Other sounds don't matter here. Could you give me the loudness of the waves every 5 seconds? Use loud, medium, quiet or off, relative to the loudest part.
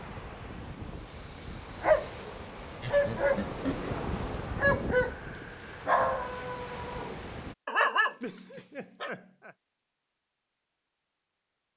loud, loud, off.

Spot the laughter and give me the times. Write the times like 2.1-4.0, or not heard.
2.8-3.9, 8.2-9.6.